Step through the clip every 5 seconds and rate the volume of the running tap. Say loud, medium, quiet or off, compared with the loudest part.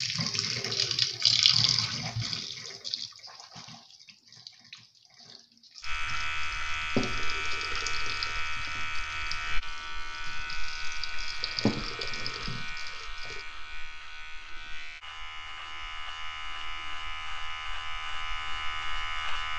loud, medium, medium, off.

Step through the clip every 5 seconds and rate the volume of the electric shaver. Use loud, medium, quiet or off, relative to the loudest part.
off, loud, medium, loud.